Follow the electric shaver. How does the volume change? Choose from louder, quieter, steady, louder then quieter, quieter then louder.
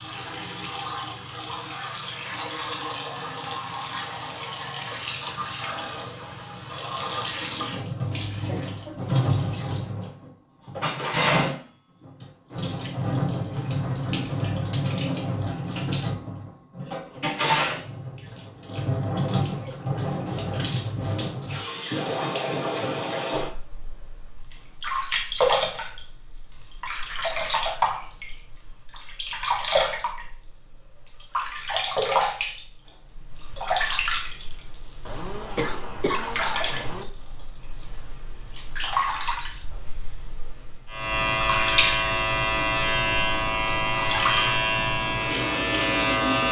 steady.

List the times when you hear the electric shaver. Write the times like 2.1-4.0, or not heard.
40.9-46.4.